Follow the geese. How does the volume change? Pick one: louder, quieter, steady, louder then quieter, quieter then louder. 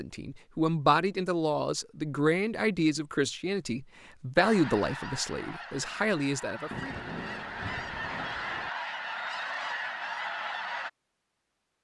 louder.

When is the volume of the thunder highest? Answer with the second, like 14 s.
7 s.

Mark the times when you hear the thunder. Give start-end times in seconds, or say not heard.
6.7-8.7.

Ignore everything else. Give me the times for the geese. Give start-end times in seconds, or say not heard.
4.3-10.9.